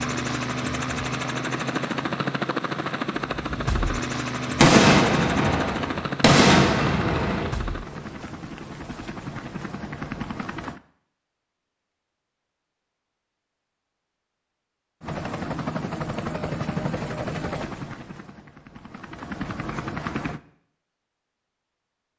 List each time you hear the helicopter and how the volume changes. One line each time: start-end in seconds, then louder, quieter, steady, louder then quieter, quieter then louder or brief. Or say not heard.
0.0-10.8 quieter
15.0-20.4 quieter then louder.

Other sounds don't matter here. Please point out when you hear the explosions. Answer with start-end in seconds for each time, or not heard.
4.5-7.5.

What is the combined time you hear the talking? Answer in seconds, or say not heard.
not heard.